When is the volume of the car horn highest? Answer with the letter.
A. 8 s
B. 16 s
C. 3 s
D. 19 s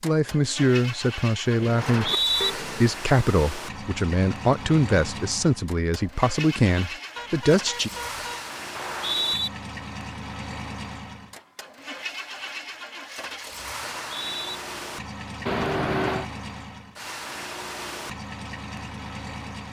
B.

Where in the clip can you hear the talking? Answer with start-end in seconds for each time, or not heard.
0.0-7.9.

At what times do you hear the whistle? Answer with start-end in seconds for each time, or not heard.
1.8-2.5, 8.8-9.5, 13.8-14.6.